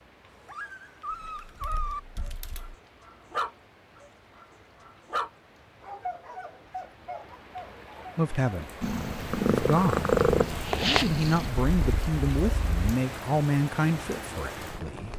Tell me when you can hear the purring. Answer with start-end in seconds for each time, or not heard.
8.8-12.9.